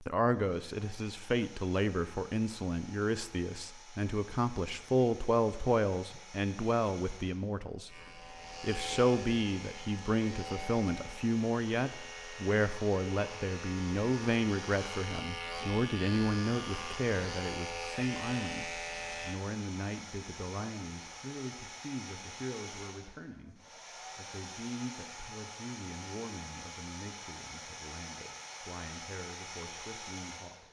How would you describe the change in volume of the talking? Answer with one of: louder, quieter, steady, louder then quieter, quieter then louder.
quieter.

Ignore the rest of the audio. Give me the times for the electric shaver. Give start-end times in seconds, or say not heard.
7.8-19.4.